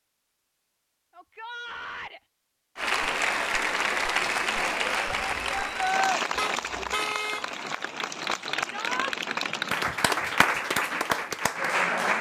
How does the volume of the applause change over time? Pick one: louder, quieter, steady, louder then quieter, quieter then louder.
quieter then louder.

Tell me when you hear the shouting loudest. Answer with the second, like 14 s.
6 s.